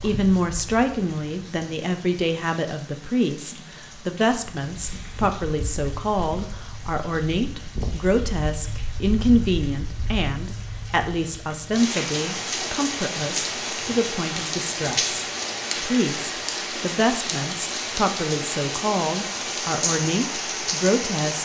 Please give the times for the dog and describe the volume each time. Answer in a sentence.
The dog can't be heard in this clip.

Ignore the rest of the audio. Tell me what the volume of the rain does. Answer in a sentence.
The loudness of the rain goes up.